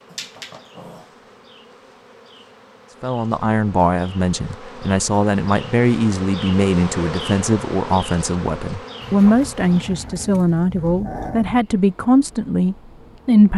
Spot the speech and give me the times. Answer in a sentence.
The speech can be heard from 3.0 to 13.5 s.